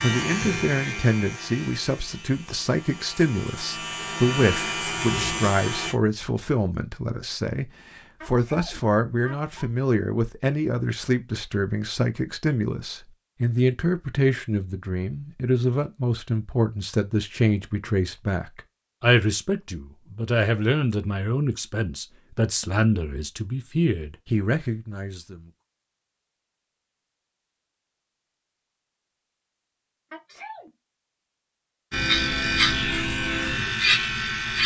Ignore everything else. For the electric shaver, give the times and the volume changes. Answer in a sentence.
The electric shaver can be heard from 0.0 to 6.0 s, getting quieter then louder; and briefly from 31.9 to 34.6 s.